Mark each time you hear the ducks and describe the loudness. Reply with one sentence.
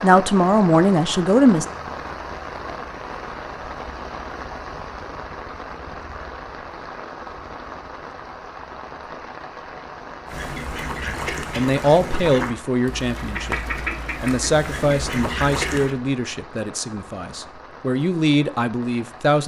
You can hear the ducks from 10.2 to 15.9 s, at a steady volume.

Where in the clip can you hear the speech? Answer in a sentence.
You can hear the speech from 0.0 to 1.6 s and from 11.1 to 19.4 s.